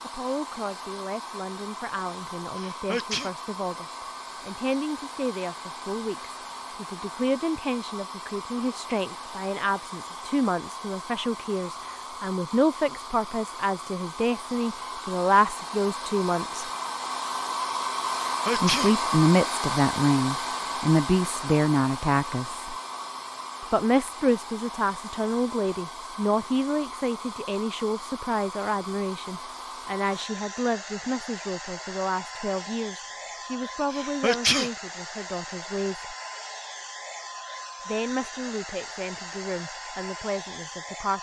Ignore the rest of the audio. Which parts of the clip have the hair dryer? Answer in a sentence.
The hair dryer can be heard from 0.0 to 41.1 s.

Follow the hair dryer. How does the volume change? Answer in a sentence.
The volume of the hair dryer goes up, then down.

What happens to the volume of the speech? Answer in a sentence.
The loudness of the speech goes up, then down.